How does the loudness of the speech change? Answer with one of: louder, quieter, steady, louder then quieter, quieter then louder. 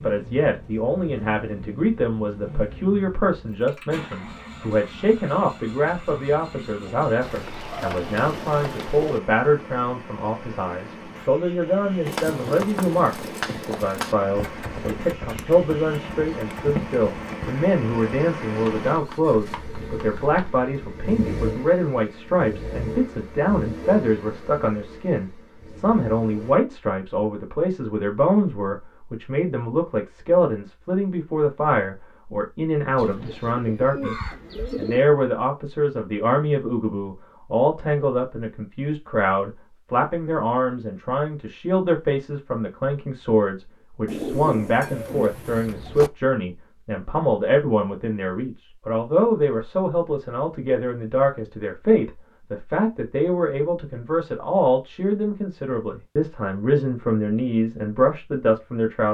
steady.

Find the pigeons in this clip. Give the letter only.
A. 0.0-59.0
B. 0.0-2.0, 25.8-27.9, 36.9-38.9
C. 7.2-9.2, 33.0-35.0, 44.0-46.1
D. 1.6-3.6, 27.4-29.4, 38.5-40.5
C.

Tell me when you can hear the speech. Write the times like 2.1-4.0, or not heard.
0.0-59.0.